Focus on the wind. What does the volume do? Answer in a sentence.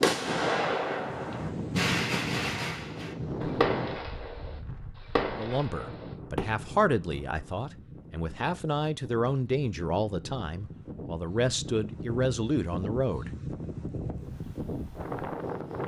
The volume of the wind goes down, then up.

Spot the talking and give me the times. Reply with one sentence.
The talking can be heard from 5.3 to 13.3 s.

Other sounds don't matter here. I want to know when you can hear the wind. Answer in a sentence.
The wind can be heard from 0.0 to 15.8 s.